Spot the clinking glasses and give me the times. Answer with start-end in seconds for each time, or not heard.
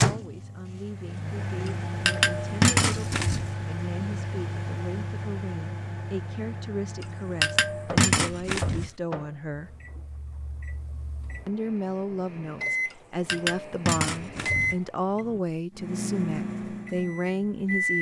1.6-3.5, 7.0-8.9, 12.9-14.8.